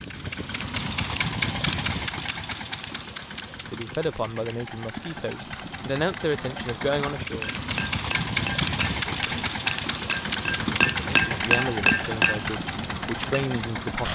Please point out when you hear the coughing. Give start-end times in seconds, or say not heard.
9.1-9.6.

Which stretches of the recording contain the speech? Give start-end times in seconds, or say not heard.
3.5-7.5, 10.9-14.1.